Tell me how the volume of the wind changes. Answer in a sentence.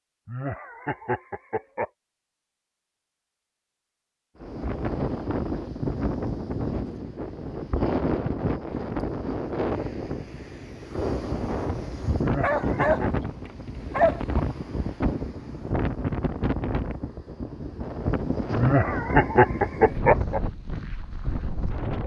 The loudness of the wind stays about the same.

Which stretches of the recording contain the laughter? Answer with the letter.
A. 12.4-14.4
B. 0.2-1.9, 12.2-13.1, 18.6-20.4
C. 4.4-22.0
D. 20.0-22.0
B.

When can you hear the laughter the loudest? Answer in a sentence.
The loudest moment of the laughter is at 19 seconds.